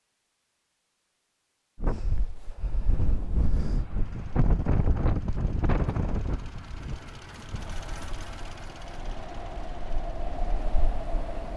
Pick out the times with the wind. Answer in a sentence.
The wind can be heard from 1.8 to 11.5 s.